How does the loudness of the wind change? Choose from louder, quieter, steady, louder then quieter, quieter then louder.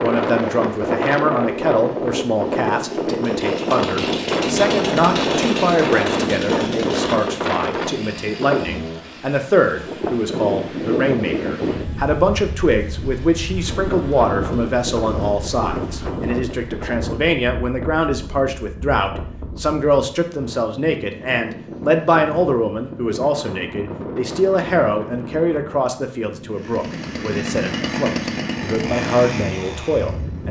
quieter.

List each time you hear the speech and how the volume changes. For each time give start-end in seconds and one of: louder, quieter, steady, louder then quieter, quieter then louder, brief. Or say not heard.
0.0-30.4 steady.